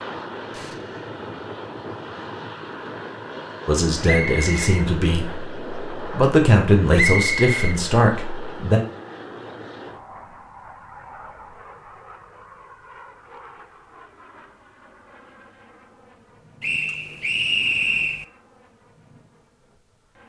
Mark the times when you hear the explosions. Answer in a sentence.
You can hear the explosions from 0.5 to 1.1 s.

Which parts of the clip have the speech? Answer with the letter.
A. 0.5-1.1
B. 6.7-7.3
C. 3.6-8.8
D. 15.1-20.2
C.